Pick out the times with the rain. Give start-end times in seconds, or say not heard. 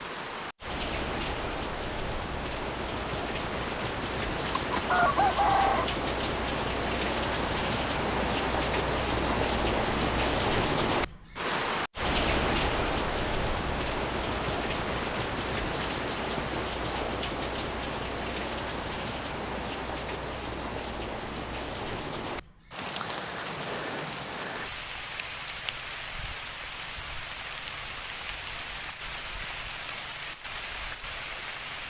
0.0-31.8.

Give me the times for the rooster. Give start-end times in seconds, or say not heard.
4.5-5.9.